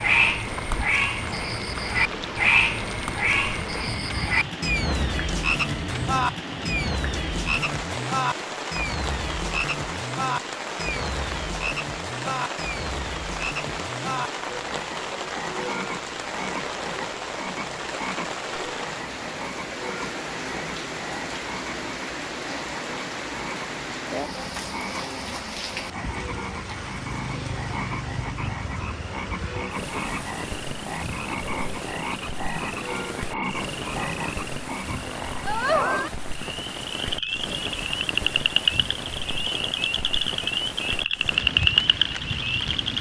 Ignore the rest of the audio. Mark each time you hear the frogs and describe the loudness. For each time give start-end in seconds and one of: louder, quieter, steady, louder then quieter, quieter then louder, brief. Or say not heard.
0.0-42.9 quieter then louder.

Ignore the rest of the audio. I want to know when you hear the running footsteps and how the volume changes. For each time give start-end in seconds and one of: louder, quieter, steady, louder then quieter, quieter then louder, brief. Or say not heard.
not heard.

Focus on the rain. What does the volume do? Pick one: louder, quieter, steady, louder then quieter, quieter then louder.
steady.